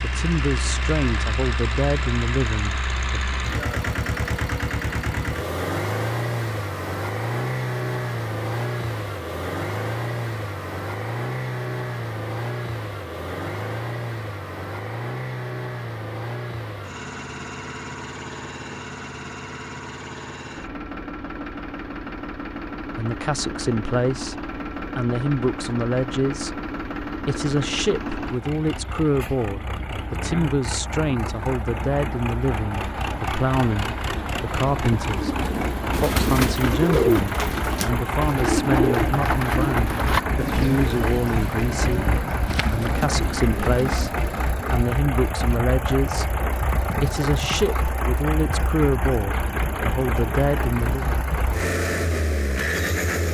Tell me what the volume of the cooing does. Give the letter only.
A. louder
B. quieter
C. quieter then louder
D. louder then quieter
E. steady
B.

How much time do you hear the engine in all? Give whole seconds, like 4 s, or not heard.
53 s.